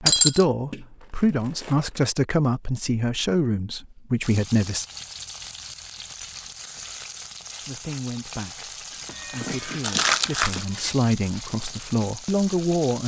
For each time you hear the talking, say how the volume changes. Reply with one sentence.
You can hear the talking from 0.0 to 4.8 s, at a steady volume; and from 7.6 to 13.0 s, getting louder.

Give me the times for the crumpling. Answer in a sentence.
The crumpling can be heard from 0.7 to 2.1 s and from 9.8 to 10.7 s.